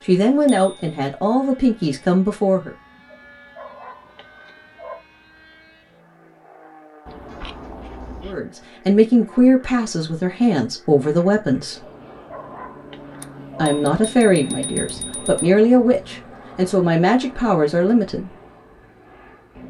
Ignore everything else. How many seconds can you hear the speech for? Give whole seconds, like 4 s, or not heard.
11 s.